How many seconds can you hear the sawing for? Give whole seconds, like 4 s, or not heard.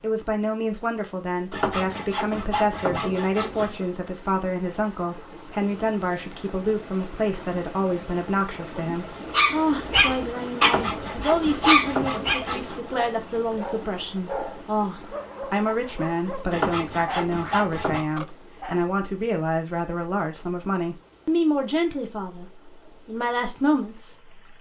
6 s.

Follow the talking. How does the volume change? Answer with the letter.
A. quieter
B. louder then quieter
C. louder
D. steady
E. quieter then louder
D.